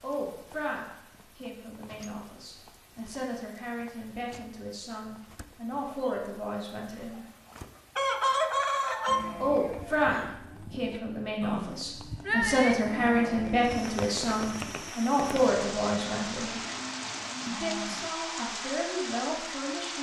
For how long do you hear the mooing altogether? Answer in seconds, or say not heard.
9 s.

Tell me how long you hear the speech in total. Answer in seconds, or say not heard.
17 s.